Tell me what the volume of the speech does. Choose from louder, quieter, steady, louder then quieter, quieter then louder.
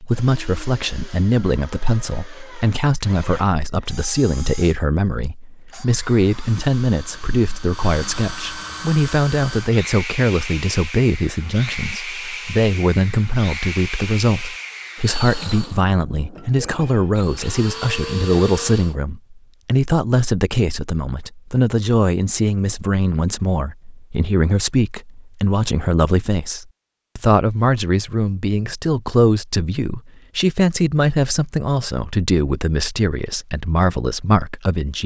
steady.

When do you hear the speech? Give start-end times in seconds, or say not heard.
0.0-35.0.